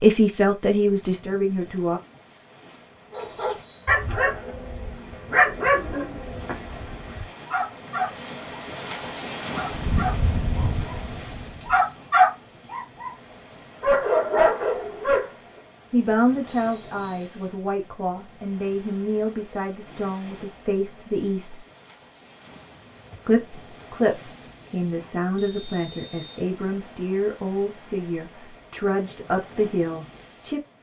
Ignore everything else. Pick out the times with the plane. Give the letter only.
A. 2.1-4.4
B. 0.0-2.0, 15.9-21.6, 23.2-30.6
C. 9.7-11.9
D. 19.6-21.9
C.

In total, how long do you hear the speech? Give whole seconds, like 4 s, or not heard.
15 s.